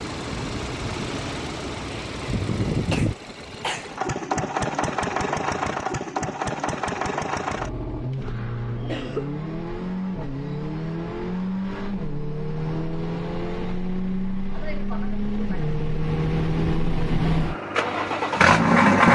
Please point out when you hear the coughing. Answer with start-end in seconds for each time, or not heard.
2.9-3.9, 8.8-9.4, 14.5-15.8.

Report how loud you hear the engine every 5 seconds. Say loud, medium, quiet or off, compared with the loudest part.
medium, medium, medium, loud.